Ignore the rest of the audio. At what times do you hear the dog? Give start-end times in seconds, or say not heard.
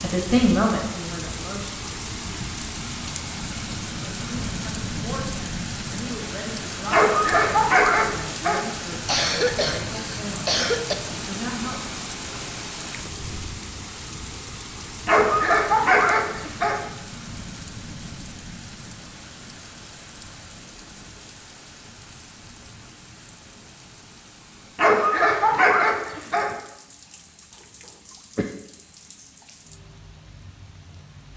6.9-8.7, 15.1-16.8, 24.8-26.6.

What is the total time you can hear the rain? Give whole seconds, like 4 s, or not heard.
31 s.